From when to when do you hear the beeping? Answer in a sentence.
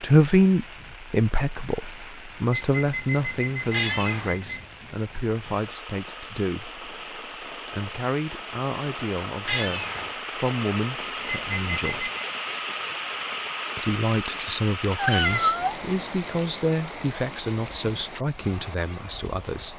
The beeping can be heard from 2.5 to 4.7 s and from 11.2 to 12.2 s.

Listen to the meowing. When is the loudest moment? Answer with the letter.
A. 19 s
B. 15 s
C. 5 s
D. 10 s
B.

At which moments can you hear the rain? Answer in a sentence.
The rain can be heard from 0.0 to 19.7 s.